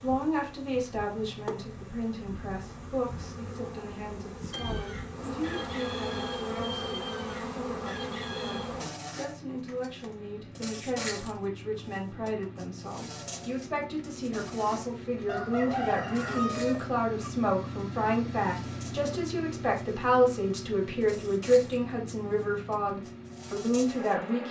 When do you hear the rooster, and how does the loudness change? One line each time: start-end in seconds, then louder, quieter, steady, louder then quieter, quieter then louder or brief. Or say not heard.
4.5-8.7 steady
15.2-17.3 brief.